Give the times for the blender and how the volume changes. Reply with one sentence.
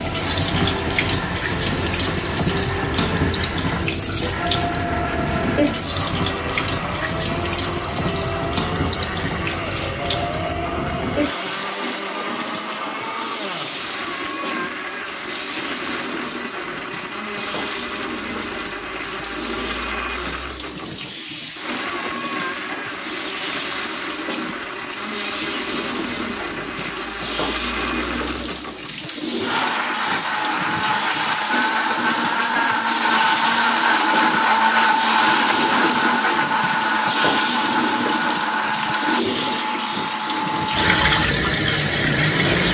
The blender can be heard from 0.1 to 42.6 s, getting louder.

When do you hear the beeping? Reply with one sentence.
The beeping can't be heard in this clip.